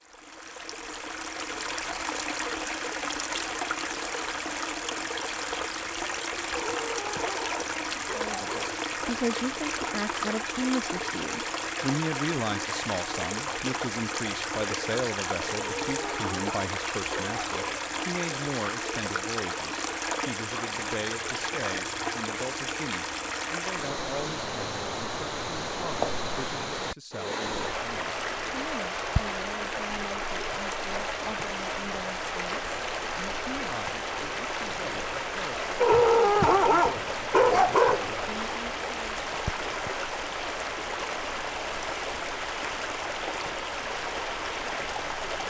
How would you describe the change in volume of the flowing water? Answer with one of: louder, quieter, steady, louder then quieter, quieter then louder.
steady.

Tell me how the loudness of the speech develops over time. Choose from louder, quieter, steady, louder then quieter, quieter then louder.
quieter.